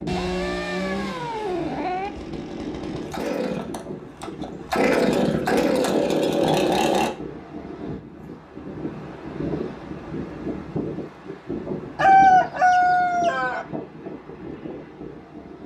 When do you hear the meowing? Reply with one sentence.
The meowing can be heard from 0.1 to 2.1 s.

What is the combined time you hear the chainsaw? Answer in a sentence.
The chainsaw can be heard for 7 seconds in total.